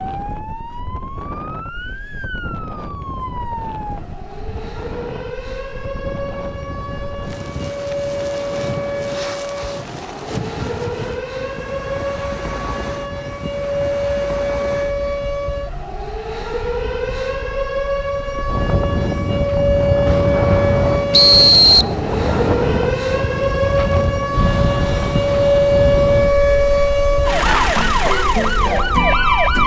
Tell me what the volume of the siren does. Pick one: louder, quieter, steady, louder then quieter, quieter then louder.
louder.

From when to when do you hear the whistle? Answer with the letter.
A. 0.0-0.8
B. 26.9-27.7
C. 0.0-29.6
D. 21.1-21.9
D.